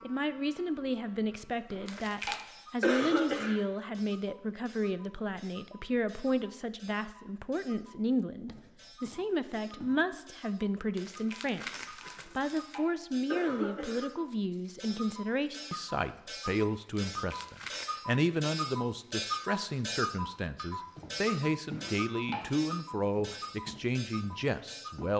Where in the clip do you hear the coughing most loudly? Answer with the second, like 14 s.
3 s.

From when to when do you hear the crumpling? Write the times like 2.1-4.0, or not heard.
1.9-2.5, 10.9-12.8, 17.1-17.9.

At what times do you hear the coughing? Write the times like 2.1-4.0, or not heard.
1.7-3.6, 12.2-14.1, 21.8-22.5.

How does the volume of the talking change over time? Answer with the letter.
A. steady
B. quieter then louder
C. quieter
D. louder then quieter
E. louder
A.